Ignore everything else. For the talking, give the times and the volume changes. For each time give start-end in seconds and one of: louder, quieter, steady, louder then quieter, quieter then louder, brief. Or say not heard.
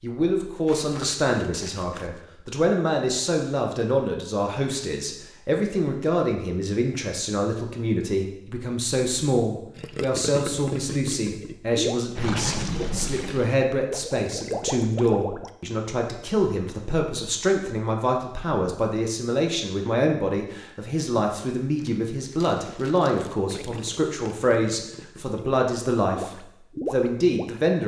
0.0-27.8 steady.